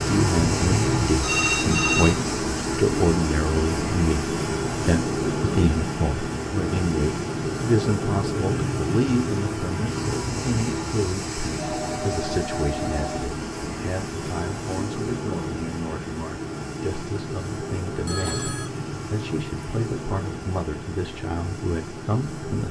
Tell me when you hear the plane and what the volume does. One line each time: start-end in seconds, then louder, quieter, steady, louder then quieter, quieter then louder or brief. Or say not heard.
0.0-22.6 quieter.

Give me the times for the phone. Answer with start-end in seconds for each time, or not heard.
1.2-2.2, 11.6-13.3, 18.1-18.7.